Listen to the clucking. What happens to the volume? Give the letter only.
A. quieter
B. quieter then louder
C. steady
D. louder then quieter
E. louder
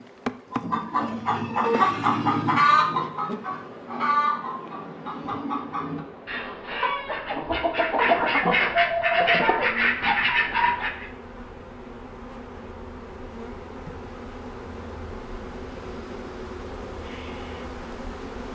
B.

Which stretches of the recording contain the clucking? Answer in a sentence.
You can hear the clucking from 0.5 to 11.1 s.